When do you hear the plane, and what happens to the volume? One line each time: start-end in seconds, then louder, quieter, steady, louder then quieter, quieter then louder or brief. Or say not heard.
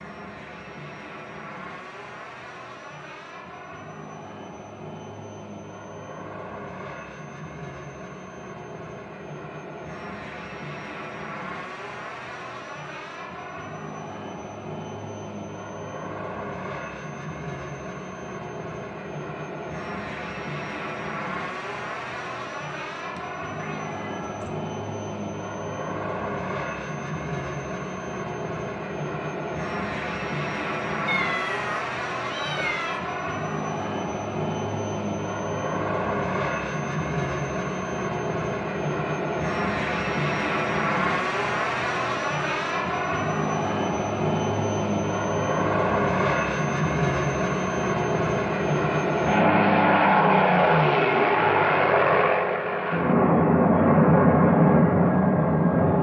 0.0-55.9 louder.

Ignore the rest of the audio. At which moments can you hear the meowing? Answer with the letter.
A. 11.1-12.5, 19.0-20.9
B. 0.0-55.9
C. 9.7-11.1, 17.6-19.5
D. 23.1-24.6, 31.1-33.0
D.